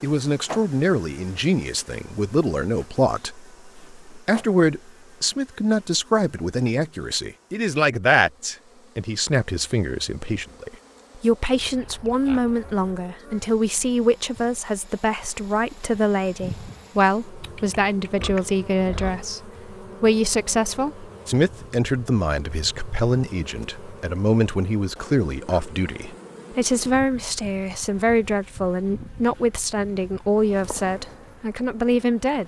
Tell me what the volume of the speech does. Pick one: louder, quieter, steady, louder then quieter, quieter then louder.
steady.